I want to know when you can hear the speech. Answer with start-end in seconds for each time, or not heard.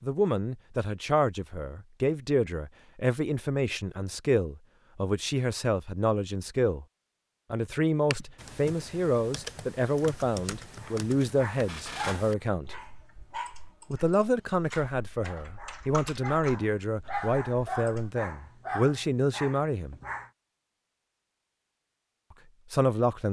0.0-6.8, 7.5-12.8, 13.9-20.0, 22.7-23.2.